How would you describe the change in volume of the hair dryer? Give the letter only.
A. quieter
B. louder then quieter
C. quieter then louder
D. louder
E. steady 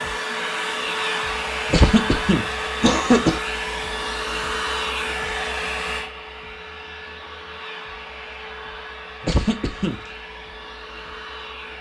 A.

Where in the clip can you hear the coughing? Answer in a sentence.
You can hear the coughing from 1.7 to 3.4 s and from 9.2 to 10.0 s.